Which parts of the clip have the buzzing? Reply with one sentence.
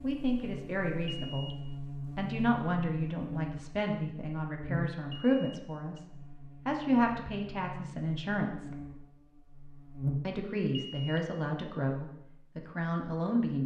The buzzing can be heard from 0.0 to 10.5 s.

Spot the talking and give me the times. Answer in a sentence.
The talking can be heard from 0.0 to 6.0 s, from 6.7 to 8.8 s and from 10.2 to 13.6 s.